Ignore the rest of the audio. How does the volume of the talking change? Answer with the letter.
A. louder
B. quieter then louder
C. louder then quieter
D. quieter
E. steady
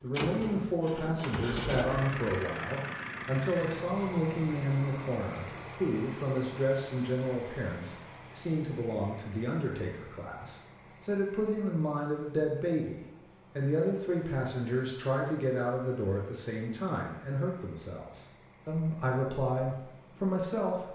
E.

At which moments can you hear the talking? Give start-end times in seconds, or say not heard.
0.0-20.9.